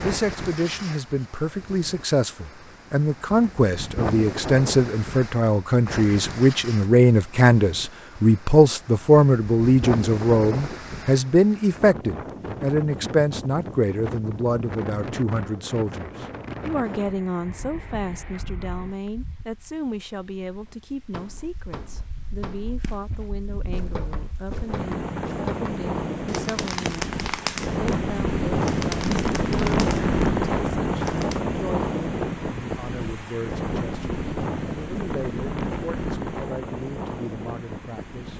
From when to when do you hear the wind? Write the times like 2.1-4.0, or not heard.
0.0-38.3.